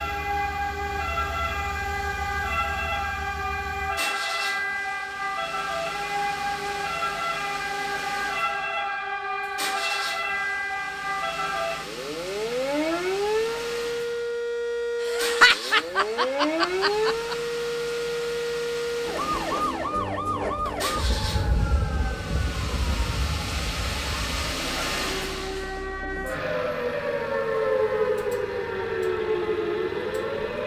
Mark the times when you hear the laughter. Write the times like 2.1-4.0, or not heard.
15.0-17.4.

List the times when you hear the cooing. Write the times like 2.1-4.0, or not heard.
not heard.